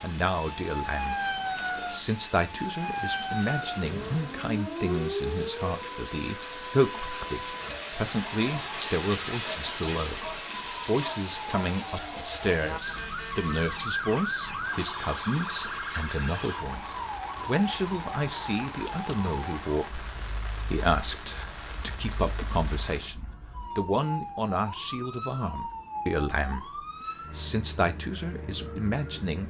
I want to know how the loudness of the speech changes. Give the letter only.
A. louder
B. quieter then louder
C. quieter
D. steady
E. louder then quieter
D.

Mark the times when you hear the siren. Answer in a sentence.
The siren can be heard from 0.0 to 29.4 s.